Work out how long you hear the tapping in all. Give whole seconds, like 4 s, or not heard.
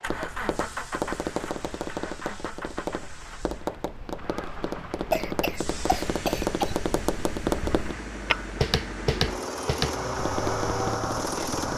12 s.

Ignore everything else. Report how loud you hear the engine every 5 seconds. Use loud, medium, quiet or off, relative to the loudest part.
medium, medium, loud.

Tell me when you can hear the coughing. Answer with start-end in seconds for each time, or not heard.
5.1-6.8.